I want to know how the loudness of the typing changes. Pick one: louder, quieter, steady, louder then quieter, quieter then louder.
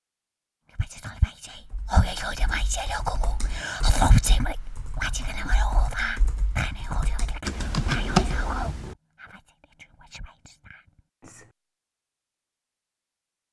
louder.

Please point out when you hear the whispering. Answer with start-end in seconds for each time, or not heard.
0.8-11.5.